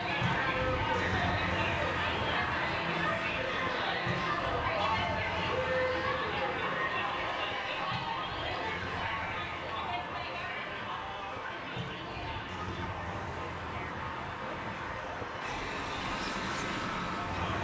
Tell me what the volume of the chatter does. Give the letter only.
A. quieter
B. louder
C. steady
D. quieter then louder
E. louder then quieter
A.